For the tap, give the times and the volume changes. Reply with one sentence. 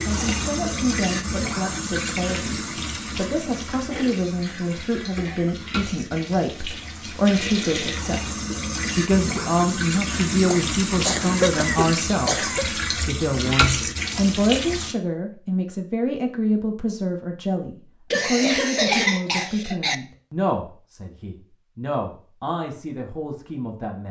You can hear the tap from 0.0 to 14.9 s, getting quieter then louder.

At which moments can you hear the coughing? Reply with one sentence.
The coughing can be heard from 3.9 to 5.5 s, from 10.5 to 12.7 s and from 18.1 to 19.9 s.